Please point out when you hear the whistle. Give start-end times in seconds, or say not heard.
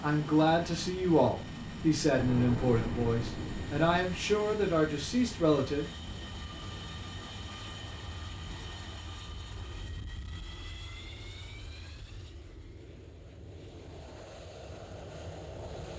not heard.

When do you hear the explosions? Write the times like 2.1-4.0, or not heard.
2.1-4.2.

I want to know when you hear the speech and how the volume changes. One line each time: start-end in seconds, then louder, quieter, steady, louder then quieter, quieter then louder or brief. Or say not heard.
0.0-5.9 steady.